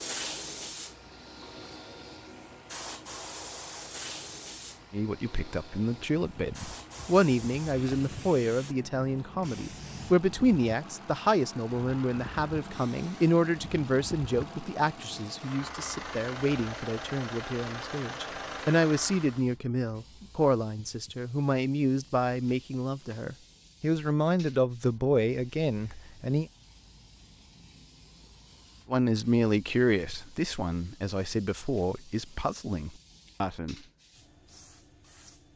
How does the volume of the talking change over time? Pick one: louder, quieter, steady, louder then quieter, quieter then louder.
steady.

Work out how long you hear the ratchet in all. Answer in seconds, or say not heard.
not heard.